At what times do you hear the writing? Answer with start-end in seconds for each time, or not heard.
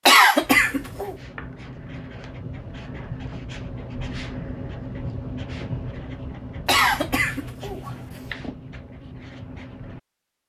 0.4-10.0.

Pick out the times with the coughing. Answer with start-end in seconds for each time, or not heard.
0.1-1.1, 6.7-7.9.